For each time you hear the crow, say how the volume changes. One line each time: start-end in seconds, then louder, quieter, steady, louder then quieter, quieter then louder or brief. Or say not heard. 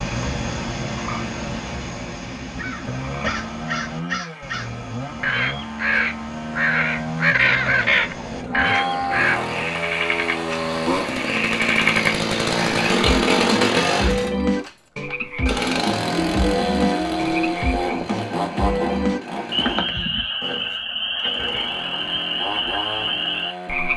2.5-9.4 louder.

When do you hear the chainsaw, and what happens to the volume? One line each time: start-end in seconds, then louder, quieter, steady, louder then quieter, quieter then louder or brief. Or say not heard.
0.0-23.9 louder then quieter.